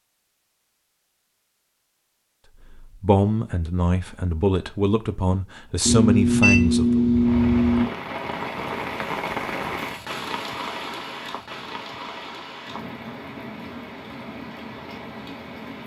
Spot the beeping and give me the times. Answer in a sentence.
You can hear the beeping from 5.8 to 7.8 s.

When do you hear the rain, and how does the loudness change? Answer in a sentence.
The rain can be heard from 7.1 to 15.8 s, getting quieter.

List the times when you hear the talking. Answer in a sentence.
The talking can be heard from 2.7 to 7.0 s.